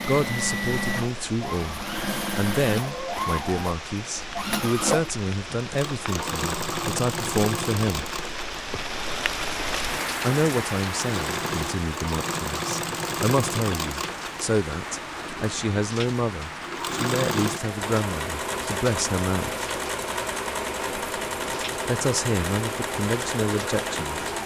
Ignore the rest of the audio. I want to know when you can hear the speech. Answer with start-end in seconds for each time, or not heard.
0.1-8.1, 10.2-19.7, 21.9-24.2.